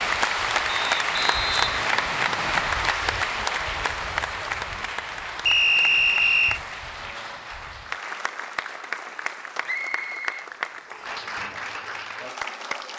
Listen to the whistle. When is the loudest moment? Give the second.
6 s.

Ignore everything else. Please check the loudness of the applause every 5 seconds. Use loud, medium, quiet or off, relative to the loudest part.
loud, medium, medium.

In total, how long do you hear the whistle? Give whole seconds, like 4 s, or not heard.
5 s.